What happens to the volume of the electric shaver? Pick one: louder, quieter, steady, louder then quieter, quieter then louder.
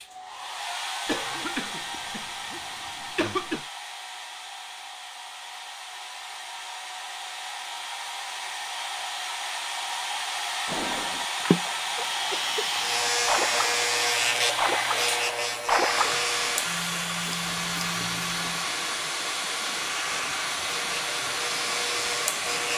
quieter then louder.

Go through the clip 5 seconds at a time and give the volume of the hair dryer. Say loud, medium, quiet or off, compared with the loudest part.
medium, medium, loud, loud, loud.